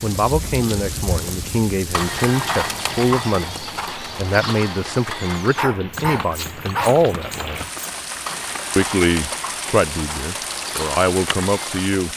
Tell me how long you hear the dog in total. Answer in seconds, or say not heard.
2 s.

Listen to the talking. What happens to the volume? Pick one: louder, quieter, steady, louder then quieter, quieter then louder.
steady.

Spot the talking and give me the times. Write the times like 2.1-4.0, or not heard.
0.0-7.7, 8.8-12.1.